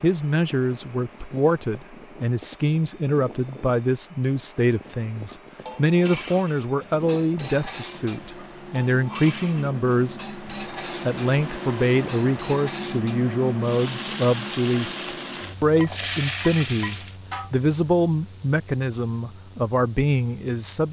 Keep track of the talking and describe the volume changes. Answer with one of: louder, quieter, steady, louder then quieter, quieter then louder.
steady.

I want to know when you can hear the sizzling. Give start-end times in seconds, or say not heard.
13.6-17.1.